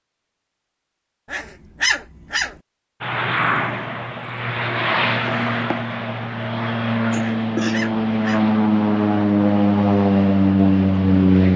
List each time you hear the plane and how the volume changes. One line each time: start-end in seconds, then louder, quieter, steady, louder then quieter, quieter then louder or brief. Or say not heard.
3.0-11.5 louder.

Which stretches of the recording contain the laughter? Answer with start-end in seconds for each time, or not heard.
7.1-7.8.